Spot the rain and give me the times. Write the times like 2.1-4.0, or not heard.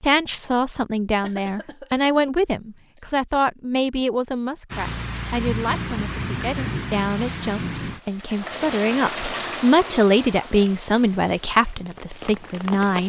4.7-13.0.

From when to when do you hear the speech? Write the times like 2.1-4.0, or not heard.
0.0-13.0.